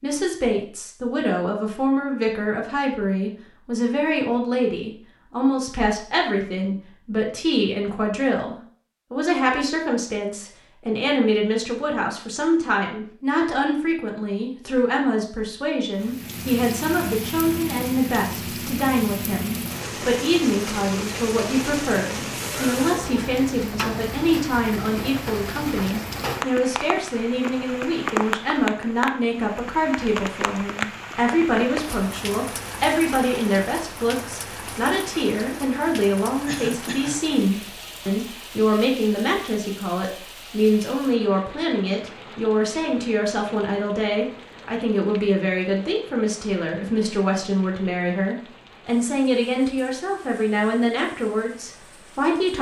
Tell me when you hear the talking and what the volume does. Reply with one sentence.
You can hear the talking from 0.0 to 52.5 s, at a steady volume.